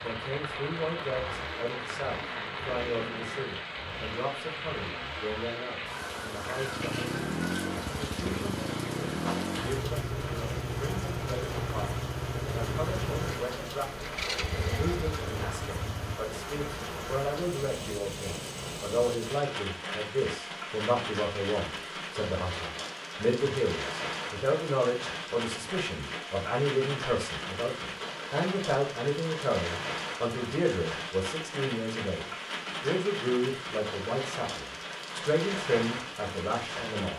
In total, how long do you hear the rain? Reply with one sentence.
The rain can be heard for 37 seconds in total.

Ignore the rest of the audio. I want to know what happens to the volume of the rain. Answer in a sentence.
The loudness of the rain stays about the same.